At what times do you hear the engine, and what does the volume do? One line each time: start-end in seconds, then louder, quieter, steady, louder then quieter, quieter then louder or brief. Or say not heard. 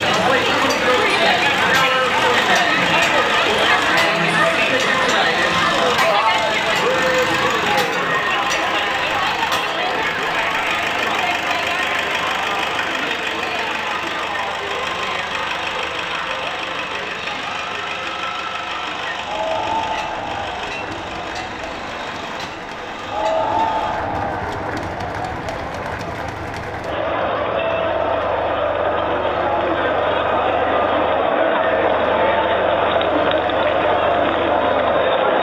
0.0-35.3 quieter.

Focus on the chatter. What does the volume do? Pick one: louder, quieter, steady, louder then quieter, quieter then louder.
quieter then louder.